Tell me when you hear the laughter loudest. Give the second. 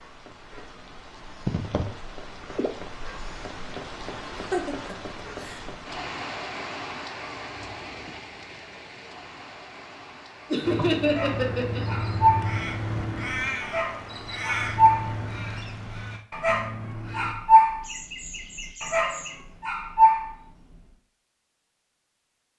11 s.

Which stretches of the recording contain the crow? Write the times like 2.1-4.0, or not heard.
10.6-17.4.